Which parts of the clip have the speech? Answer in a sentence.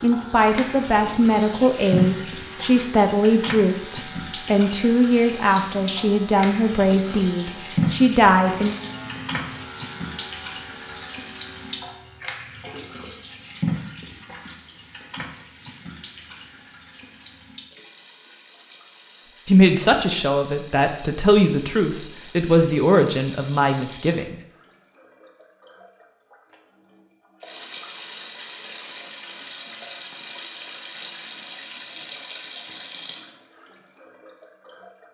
The speech can be heard from 0.0 to 8.8 s and from 19.4 to 24.4 s.